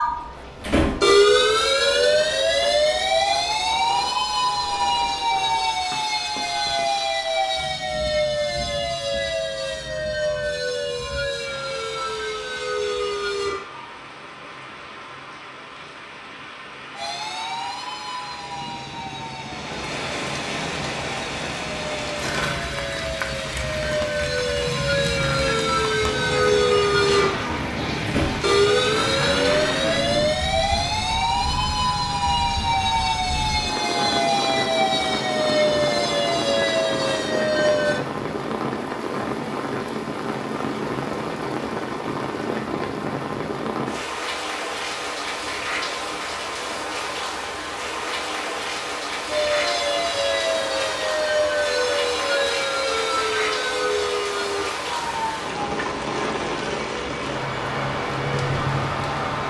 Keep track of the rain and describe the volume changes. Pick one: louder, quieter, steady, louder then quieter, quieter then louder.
louder.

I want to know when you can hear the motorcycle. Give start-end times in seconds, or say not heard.
18.4-30.4, 57.1-59.4.